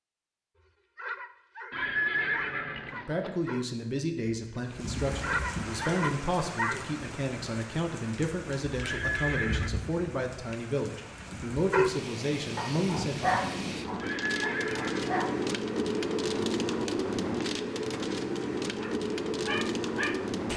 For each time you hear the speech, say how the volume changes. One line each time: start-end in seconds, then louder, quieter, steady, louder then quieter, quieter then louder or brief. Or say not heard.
2.9-13.4 steady.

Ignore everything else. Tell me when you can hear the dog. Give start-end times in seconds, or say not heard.
0.9-6.8, 11.7-15.4, 18.6-20.2.